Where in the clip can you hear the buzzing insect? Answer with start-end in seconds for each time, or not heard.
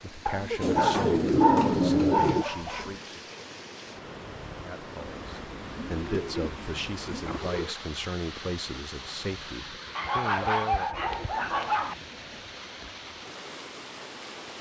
not heard.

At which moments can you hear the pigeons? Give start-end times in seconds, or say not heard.
0.6-2.5, 5.2-7.8, 10.8-12.4.